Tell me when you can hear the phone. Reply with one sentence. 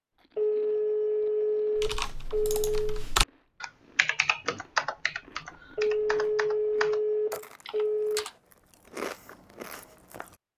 You can hear the phone from 0.3 to 3.0 s and from 5.8 to 8.2 s.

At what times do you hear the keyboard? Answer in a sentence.
You can hear the keyboard from 1.8 to 8.4 s.